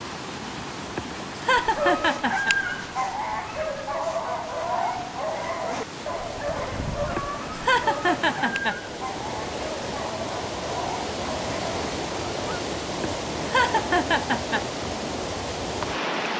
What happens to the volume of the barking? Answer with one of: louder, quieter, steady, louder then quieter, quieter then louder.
quieter.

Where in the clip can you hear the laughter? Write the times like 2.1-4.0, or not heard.
0.9-2.5, 7.2-8.8, 13.0-14.7.